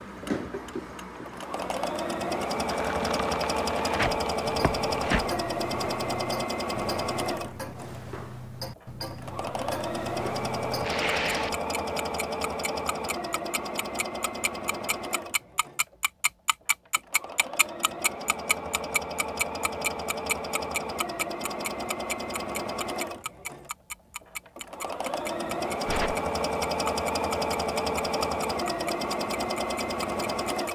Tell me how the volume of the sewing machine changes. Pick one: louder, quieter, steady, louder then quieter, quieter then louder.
quieter then louder.